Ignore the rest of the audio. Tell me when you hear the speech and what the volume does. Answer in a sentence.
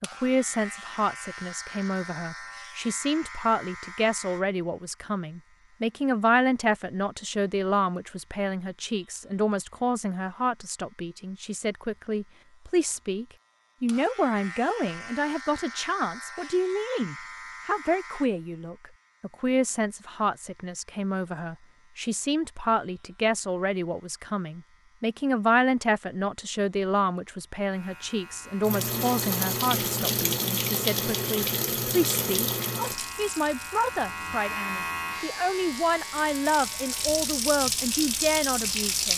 You can hear the speech from 0.0 to 39.1 s, at a steady volume.